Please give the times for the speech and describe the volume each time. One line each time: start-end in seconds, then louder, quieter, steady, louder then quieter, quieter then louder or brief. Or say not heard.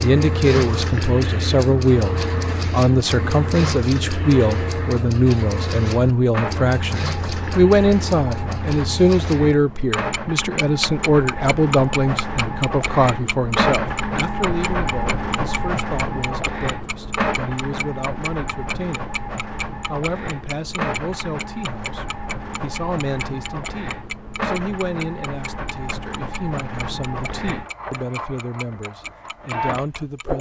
0.0-19.1 quieter
19.9-30.3 steady.